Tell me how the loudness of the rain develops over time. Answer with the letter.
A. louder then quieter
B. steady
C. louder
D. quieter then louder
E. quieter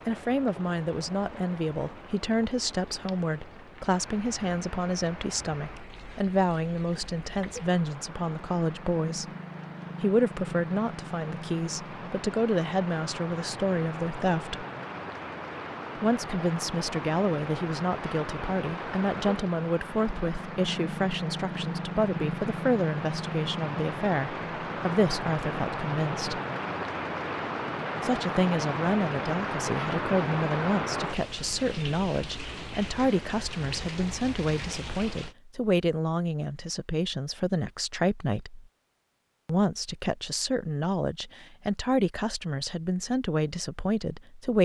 C.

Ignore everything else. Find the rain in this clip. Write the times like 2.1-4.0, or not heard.
0.0-35.4.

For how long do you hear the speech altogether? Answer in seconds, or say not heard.
40 s.